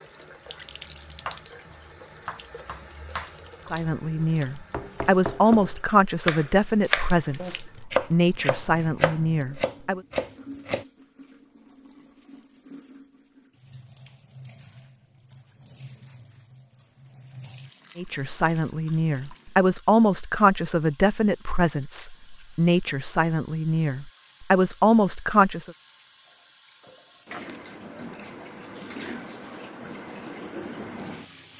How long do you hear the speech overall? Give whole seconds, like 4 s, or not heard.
14 s.